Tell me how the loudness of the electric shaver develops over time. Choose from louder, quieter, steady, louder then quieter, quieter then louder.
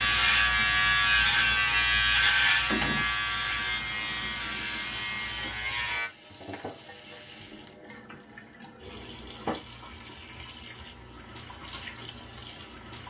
quieter.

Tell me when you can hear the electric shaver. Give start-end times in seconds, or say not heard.
0.0-6.1.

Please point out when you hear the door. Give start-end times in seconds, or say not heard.
1.9-3.1.